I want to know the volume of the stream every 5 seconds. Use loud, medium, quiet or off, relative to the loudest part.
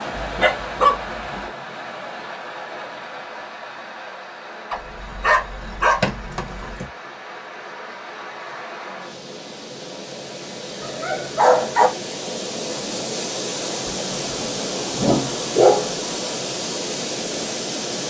medium, medium, loud, loud.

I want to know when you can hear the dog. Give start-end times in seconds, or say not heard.
0.2-1.4, 4.7-6.8, 10.8-11.9, 13.8-15.9.